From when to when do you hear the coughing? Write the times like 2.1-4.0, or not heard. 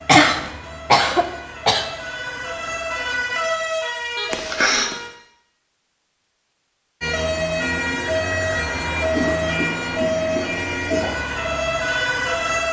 0.1-1.9, 4.3-5.0, 9.1-11.1.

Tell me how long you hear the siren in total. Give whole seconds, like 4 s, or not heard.
11 s.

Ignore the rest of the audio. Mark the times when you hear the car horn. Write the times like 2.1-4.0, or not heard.
4.2-4.9.